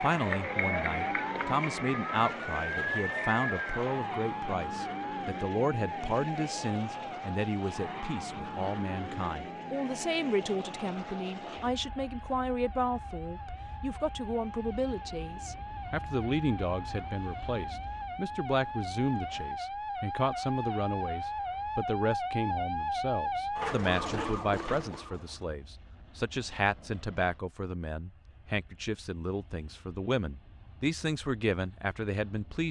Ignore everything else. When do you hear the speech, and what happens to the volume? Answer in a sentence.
The speech can be heard from 0.0 to 32.6 s, at a steady volume.